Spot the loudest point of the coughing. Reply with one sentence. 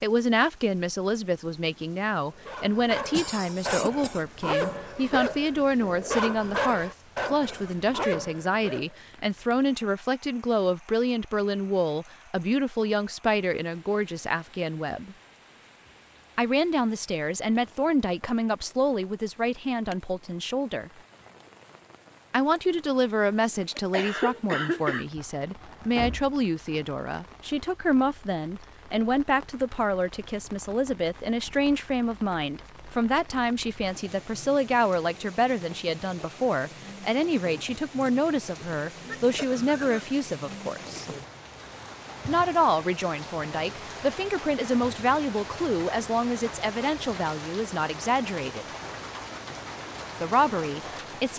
The volume of the coughing peaks at 25 seconds.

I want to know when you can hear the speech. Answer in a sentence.
The speech can be heard from 0.0 to 15.2 s, from 16.4 to 20.9 s, from 22.3 to 41.0 s, from 42.2 to 48.6 s and from 50.2 to 51.3 s.